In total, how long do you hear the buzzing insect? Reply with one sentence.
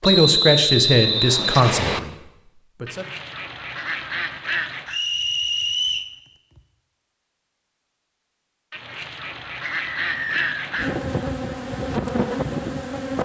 You can hear the buzzing insect for 3 seconds altogether.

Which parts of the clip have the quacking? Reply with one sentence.
You can hear the quacking from 2.9 to 5.0 s and from 8.7 to 10.9 s.